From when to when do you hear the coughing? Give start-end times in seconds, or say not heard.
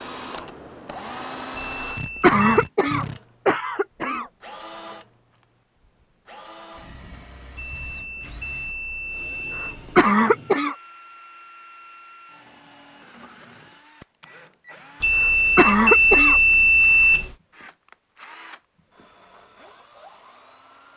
1.8-4.2, 9.6-10.8, 15.2-16.4.